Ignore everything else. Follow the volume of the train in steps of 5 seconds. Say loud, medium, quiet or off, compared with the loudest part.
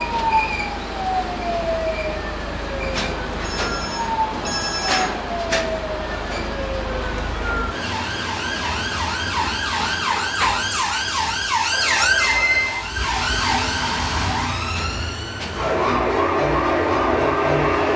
loud, loud, medium, loud.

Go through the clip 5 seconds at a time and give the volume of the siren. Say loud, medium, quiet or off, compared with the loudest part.
medium, medium, loud, loud.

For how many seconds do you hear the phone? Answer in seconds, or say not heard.
3 s.